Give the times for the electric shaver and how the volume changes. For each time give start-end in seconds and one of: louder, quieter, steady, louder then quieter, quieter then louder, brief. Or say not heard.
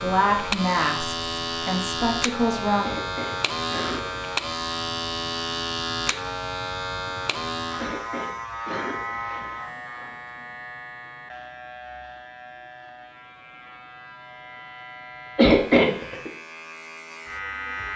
0.0-17.9 quieter.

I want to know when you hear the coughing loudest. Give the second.
16 s.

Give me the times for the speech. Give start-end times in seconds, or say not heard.
0.0-3.0.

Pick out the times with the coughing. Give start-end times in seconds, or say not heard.
2.8-4.2, 7.8-9.8, 15.3-16.3.